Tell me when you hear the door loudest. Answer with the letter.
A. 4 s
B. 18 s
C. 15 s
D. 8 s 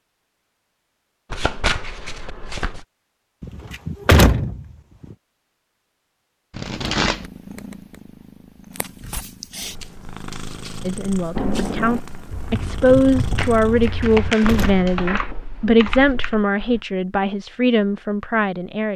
A.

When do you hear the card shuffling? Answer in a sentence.
You can hear the card shuffling from 1.3 to 2.9 s, from 6.5 to 7.3 s and from 13.3 to 15.3 s.